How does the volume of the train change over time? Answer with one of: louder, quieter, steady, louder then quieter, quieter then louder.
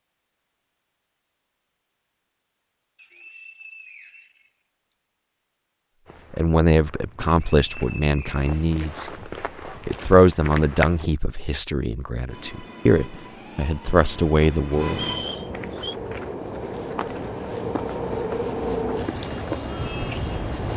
louder.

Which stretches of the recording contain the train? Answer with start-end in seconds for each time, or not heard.
12.2-20.7.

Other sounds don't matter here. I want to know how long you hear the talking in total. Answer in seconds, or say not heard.
9 s.